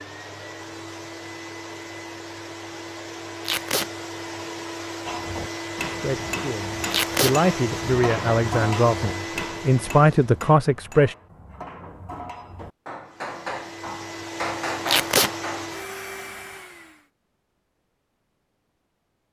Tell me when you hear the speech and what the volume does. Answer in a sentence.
You can hear the speech from 5.8 to 11.2 s, getting louder.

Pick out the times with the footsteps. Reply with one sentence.
The footsteps can't be heard in this clip.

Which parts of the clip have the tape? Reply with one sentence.
You can hear the tape from 3.5 to 3.9 s, from 6.9 to 7.3 s and from 14.8 to 15.3 s.